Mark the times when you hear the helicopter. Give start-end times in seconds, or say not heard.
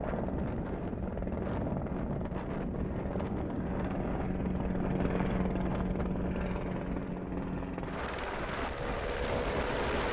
0.0-10.0.